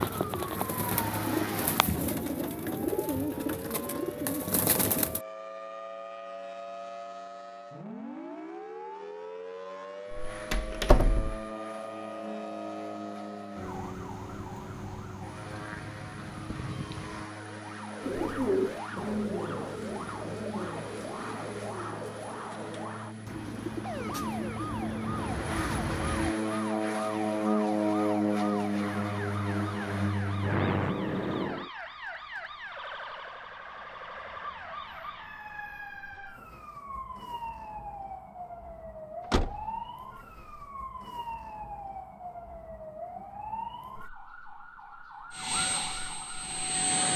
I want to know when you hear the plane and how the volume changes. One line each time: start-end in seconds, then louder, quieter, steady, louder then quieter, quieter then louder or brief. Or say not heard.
0.0-1.9 brief
10.1-31.7 louder
45.3-47.1 brief.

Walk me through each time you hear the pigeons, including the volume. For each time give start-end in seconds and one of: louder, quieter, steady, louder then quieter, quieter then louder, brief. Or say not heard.
0.0-5.2 steady
18.0-26.4 quieter then louder.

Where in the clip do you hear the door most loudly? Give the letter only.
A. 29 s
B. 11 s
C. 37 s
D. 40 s
B.